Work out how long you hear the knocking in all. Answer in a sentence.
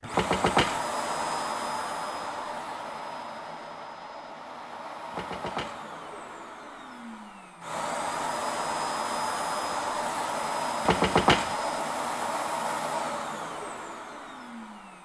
You can hear the knocking for 2 seconds altogether.